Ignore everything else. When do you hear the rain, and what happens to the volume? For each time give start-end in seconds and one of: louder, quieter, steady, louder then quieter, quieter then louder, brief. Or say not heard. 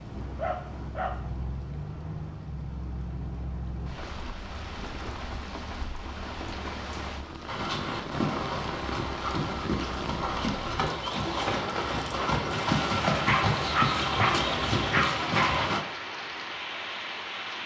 0.0-17.6 steady.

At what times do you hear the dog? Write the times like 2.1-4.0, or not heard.
0.3-1.3, 13.1-15.7.